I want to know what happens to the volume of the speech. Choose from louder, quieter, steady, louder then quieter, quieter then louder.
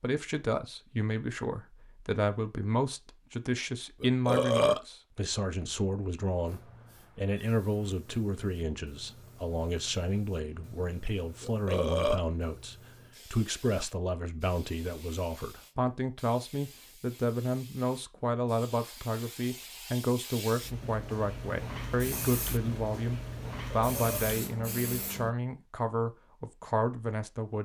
steady.